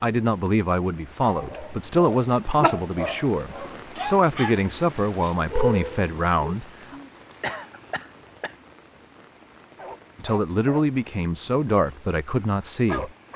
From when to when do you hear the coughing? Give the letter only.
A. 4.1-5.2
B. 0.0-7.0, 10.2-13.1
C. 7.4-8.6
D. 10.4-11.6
C.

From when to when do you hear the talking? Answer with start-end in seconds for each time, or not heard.
0.0-7.0, 10.2-13.1.